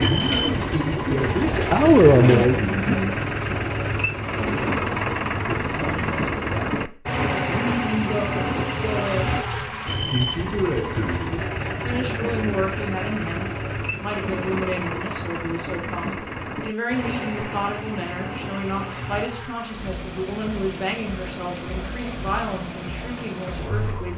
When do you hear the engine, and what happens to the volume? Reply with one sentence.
You can hear the engine from 0.0 to 24.1 s, getting quieter.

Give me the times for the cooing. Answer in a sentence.
You can hear the cooing from 0.0 to 3.0 s.